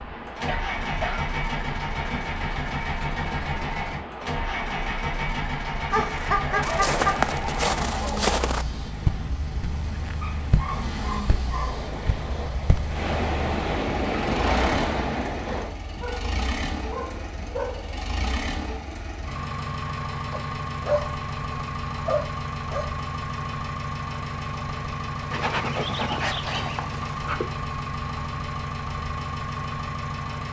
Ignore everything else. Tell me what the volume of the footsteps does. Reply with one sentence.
The loudness of the footsteps goes down.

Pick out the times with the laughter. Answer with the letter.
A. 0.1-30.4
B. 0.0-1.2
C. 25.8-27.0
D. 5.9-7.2
D.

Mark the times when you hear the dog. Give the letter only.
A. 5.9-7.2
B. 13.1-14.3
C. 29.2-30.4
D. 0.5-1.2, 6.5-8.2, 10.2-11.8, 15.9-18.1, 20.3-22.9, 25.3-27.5
D.